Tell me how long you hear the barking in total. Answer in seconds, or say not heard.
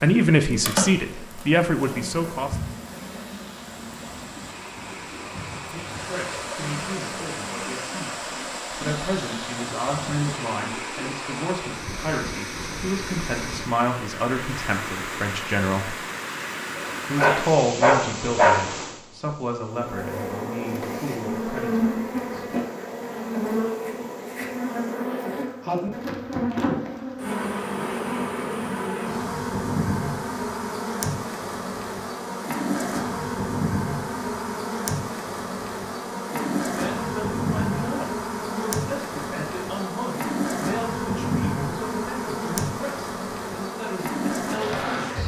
2 s.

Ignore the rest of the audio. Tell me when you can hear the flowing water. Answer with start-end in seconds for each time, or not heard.
0.0-25.0.